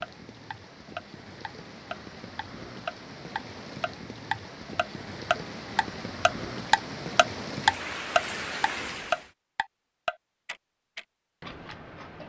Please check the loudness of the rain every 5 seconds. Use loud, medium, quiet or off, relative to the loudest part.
medium, loud, off.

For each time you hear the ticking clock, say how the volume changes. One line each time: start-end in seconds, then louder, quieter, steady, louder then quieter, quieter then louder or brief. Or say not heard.
0.0-12.2 louder then quieter.